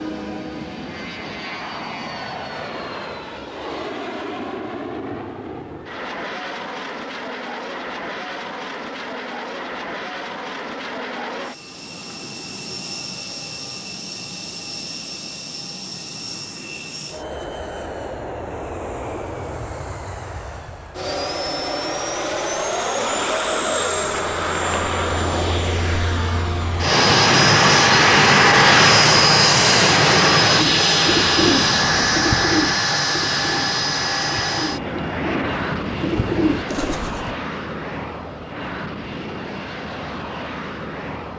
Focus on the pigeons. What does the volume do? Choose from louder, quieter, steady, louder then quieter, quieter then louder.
quieter then louder.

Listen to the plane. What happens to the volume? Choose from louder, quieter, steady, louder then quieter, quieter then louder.
louder then quieter.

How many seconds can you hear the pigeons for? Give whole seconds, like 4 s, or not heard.
7 s.